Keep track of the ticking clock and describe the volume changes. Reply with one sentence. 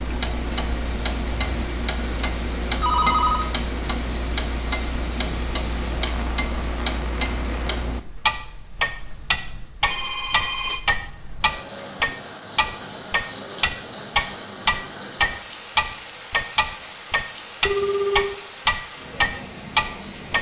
The loudness of the ticking clock goes up.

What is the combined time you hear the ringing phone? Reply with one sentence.
The ringing phone can be heard for 2 seconds in total.